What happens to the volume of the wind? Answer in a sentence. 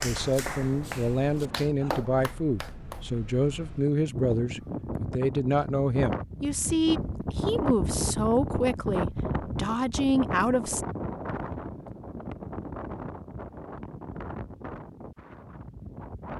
The volume of the wind goes up, then down.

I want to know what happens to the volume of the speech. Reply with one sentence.
The volume of the speech stays about the same.